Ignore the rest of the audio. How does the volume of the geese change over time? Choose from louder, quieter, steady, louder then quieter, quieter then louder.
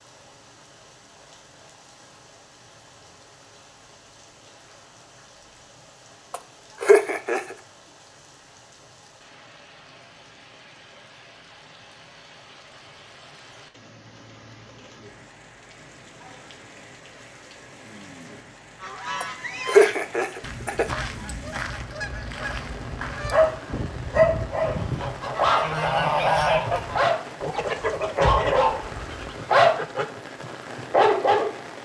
louder then quieter.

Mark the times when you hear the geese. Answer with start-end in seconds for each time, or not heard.
18.8-30.1.